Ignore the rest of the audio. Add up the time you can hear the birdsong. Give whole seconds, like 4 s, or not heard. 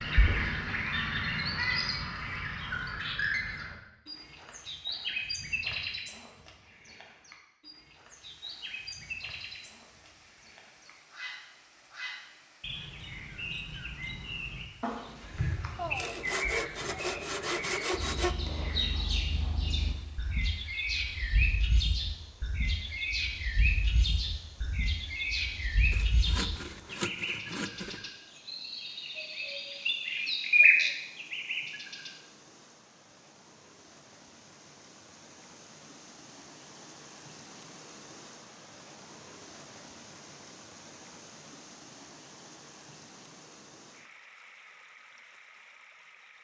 32 s.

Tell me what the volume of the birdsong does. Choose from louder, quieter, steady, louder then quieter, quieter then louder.
quieter then louder.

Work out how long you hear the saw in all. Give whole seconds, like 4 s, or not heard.
5 s.